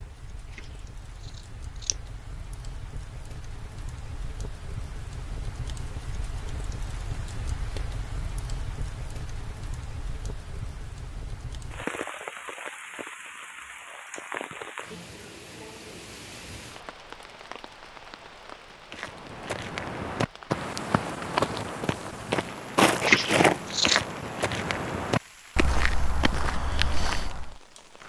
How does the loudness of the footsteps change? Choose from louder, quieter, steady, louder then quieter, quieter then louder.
louder then quieter.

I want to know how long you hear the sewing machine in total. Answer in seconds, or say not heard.
not heard.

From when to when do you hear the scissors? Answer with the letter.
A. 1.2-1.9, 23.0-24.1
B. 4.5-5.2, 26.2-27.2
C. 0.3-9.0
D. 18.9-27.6
A.